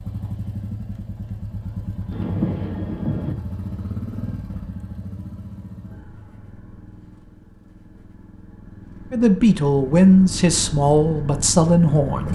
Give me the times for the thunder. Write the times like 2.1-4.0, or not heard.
2.1-3.4.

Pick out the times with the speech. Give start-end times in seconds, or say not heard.
9.1-12.3.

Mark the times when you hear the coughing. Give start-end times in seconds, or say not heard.
not heard.